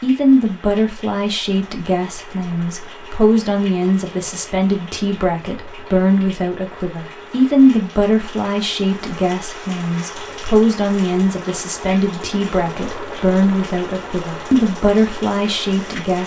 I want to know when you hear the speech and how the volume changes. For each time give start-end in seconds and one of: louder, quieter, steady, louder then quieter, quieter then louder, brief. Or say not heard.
0.0-16.2 steady.